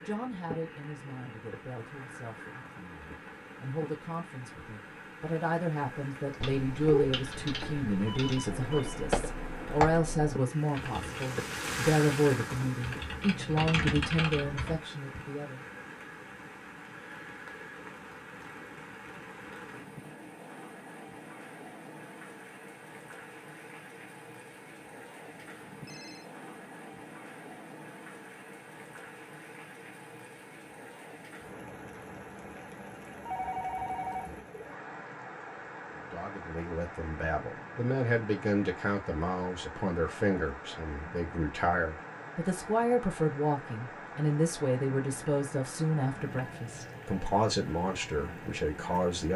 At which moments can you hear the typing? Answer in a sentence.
You can hear the typing from 6.3 to 15.2 s.